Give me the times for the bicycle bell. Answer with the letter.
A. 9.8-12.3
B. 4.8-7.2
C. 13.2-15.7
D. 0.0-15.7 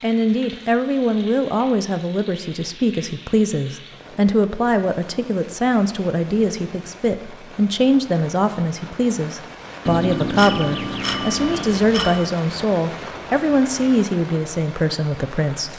A.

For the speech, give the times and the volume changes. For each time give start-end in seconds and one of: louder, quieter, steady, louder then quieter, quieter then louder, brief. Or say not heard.
0.0-15.7 steady.